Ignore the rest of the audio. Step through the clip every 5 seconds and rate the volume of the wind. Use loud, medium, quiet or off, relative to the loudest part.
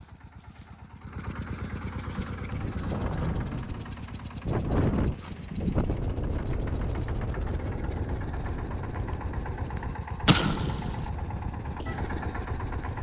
loud, loud, medium.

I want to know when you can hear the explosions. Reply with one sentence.
You can hear the explosions from 10.2 to 11.1 s.